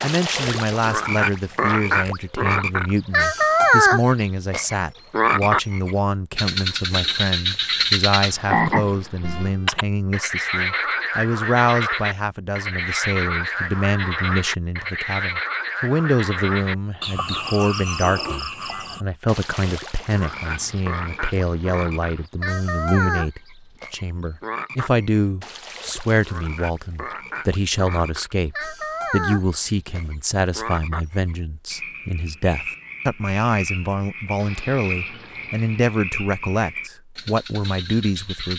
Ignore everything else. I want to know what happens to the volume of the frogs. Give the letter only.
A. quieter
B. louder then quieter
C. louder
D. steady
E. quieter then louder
A.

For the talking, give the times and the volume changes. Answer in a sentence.
The talking can be heard from 0.0 to 38.5 s, at a steady volume.